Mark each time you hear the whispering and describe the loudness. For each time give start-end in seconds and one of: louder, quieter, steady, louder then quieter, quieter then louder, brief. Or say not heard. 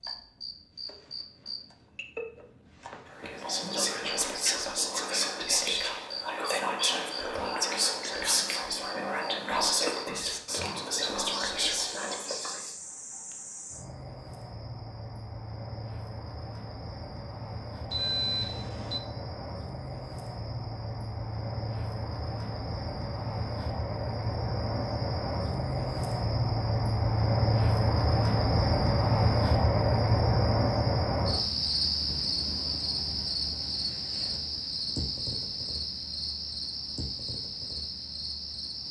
3.1-12.8 steady.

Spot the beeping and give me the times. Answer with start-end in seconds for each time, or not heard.
17.9-19.0.